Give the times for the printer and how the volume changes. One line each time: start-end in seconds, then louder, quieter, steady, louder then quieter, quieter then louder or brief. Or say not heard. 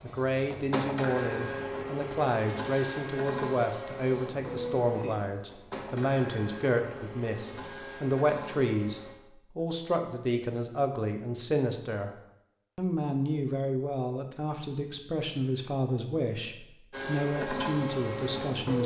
0.0-9.2 quieter
16.9-18.8 brief.